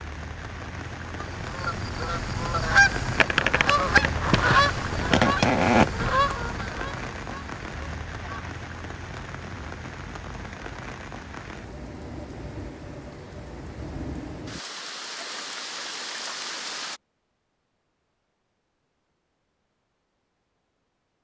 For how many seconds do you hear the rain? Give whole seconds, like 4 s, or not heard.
17 s.